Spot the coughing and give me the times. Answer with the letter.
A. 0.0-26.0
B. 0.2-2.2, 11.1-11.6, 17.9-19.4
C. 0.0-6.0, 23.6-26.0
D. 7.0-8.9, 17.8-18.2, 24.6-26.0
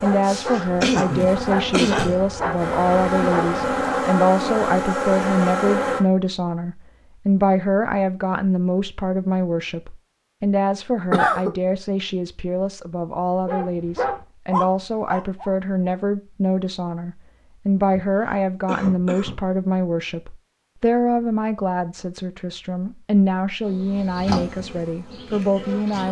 B.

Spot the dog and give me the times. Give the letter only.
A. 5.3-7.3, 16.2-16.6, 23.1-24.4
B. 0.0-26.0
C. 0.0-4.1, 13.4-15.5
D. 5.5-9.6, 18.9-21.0
C.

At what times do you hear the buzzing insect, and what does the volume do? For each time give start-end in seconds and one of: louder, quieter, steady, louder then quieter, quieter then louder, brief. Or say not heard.
0.0-6.0 louder
23.6-26.0 brief.